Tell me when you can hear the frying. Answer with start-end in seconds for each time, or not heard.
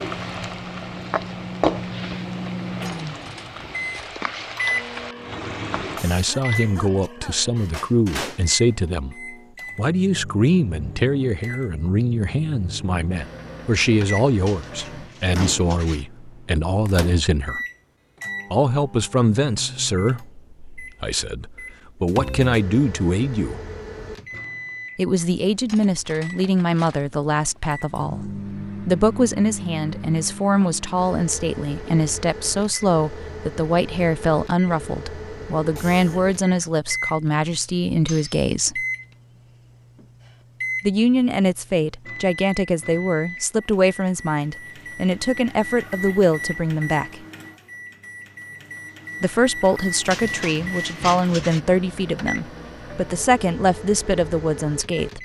0.0-6.2.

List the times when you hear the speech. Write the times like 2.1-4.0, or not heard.
6.0-17.6, 18.5-23.6, 24.9-38.9, 40.8-47.1, 49.2-55.1.